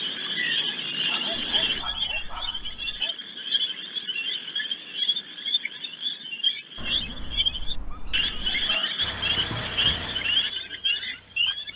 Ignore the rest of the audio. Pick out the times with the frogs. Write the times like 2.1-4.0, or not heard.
0.0-11.7.